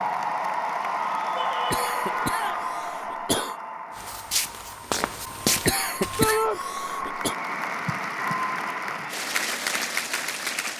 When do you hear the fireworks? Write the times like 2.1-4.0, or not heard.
not heard.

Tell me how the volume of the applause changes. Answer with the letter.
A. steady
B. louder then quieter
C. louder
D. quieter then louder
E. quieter
D.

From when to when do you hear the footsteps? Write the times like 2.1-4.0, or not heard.
4.0-6.3.